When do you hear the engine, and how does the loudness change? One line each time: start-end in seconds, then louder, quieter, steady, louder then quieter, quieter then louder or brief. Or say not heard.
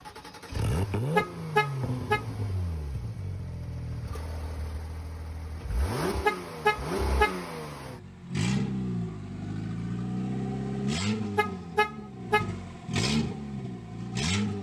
0.0-14.5 quieter then louder.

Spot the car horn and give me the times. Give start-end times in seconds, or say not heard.
1.1-2.2, 6.2-7.3, 11.3-12.5.